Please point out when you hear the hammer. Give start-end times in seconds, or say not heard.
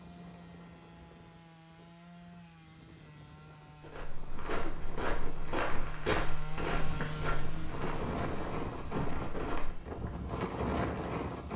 not heard.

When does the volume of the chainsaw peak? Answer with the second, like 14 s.
7 s.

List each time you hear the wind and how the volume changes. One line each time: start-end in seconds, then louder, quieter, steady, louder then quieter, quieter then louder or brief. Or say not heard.
0.0-11.5 louder.